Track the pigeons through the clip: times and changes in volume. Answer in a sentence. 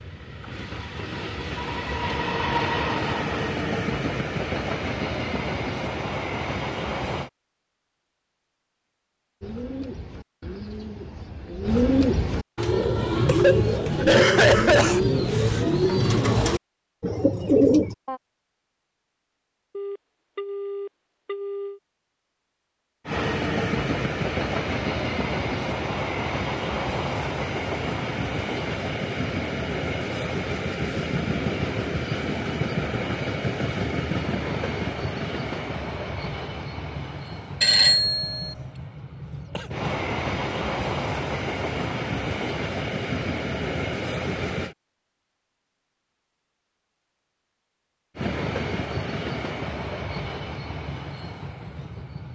The pigeons can be heard from 9.4 to 18.2 s, getting louder.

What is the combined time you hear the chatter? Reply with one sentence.
You can't hear the chatter here.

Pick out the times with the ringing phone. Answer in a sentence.
You can hear the ringing phone from 19.7 to 21.8 s and from 37.6 to 38.5 s.